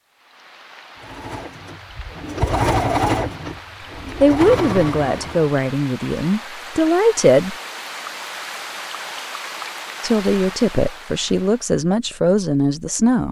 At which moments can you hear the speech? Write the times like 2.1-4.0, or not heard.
4.2-7.5, 10.0-13.2.